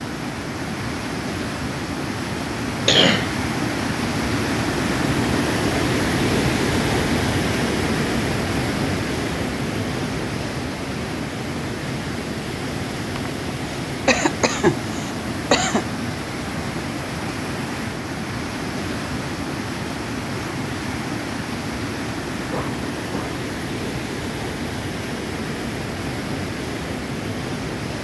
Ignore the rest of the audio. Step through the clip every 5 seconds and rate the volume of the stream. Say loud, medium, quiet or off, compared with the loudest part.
loud, loud, medium, medium, medium, medium.